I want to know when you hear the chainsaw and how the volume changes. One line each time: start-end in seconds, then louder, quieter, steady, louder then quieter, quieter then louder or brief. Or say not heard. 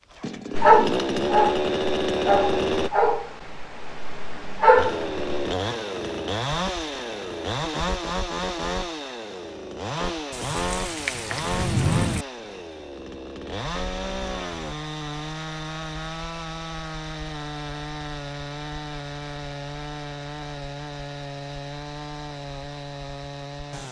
0.0-2.9 brief
4.8-23.8 quieter.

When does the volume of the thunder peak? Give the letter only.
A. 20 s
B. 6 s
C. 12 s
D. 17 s
C.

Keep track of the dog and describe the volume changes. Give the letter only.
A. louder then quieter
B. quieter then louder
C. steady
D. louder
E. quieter
B.